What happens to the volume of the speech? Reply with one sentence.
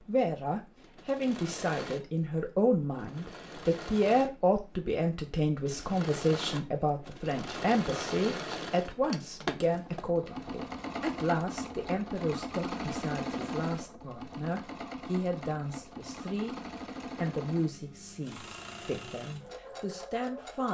The loudness of the speech goes down.